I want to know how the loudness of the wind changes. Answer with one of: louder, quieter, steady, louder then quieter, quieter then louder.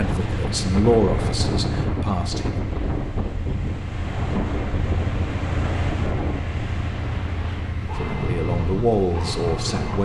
quieter.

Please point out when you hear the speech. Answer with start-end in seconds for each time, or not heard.
0.0-2.5, 8.0-9.9.